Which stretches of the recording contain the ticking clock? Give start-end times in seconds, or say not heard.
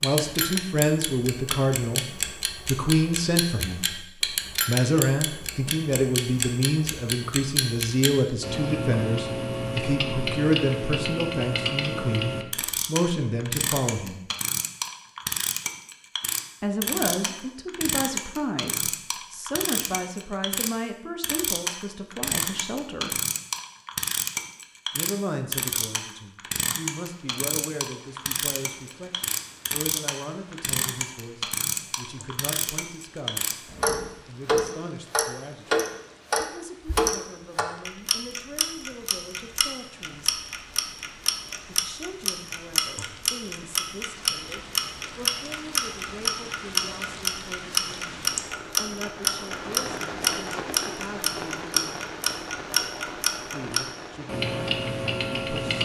0.0-55.7.